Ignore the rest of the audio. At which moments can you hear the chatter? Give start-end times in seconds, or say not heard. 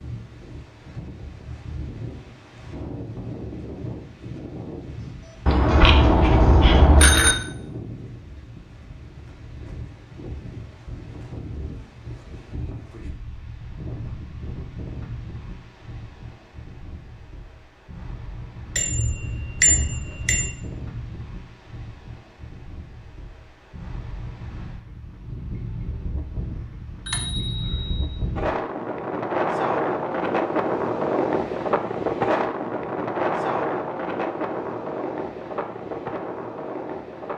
not heard.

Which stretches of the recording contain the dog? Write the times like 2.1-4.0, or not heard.
not heard.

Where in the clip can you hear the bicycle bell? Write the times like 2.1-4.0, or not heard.
5.5-7.3, 18.8-20.5, 27.1-28.1.